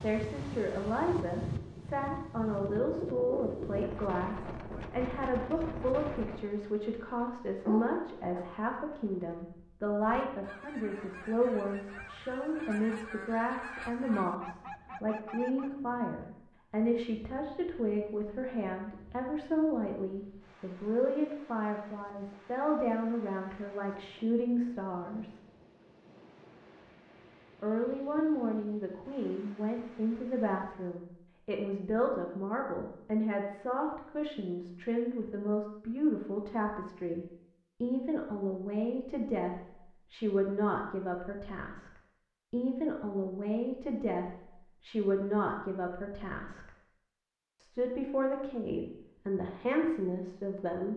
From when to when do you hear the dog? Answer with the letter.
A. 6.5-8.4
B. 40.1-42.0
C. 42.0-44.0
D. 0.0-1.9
A.